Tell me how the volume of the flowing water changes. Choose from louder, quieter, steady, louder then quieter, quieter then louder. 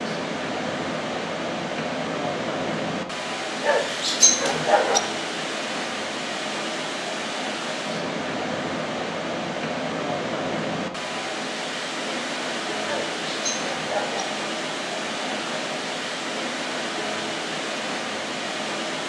steady.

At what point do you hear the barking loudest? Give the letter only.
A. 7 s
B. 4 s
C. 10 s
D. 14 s
B.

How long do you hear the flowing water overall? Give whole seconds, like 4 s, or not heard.
19 s.